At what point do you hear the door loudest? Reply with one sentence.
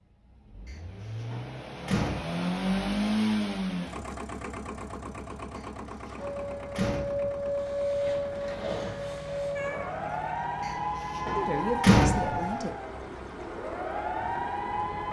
The loudest moment of the door is at 12 seconds.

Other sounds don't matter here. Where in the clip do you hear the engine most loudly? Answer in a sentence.
The loudest moment of the engine is at 3 seconds.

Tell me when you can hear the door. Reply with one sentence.
You can hear the door from 0.7 to 2.5 s, from 5.5 to 7.3 s and from 10.6 to 12.6 s.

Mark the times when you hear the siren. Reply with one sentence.
The siren can be heard from 6.2 to 15.0 s.